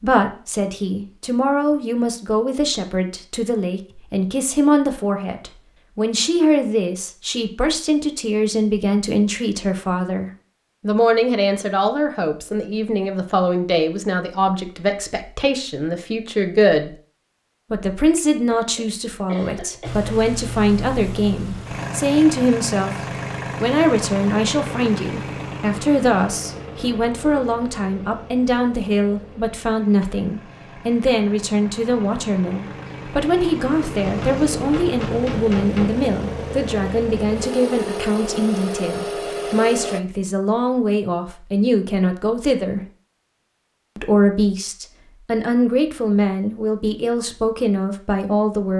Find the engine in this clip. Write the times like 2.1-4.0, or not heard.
19.8-40.0.